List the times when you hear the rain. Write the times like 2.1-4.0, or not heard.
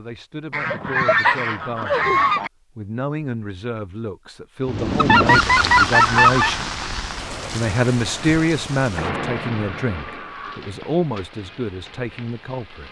4.7-12.8.